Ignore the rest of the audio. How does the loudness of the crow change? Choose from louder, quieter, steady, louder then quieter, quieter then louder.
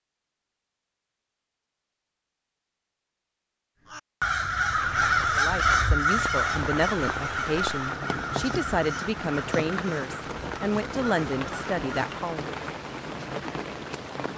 quieter.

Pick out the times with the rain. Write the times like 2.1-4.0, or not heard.
4.7-14.3.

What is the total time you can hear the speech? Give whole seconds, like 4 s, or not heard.
7 s.